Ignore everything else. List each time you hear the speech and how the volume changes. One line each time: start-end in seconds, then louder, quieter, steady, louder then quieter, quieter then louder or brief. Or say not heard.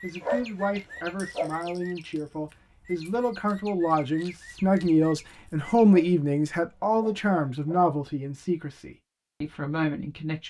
0.0-10.4 louder then quieter.